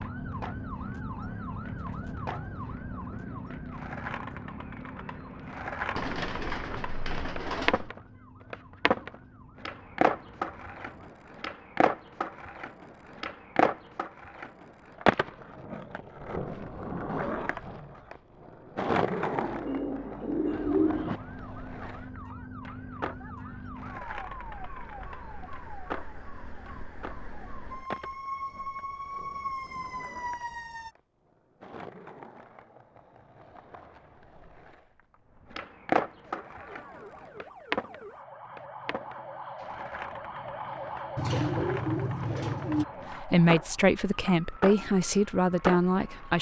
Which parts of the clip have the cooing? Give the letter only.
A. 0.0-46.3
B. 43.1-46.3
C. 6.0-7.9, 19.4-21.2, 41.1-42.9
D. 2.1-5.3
C.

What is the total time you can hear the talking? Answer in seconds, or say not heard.
3 s.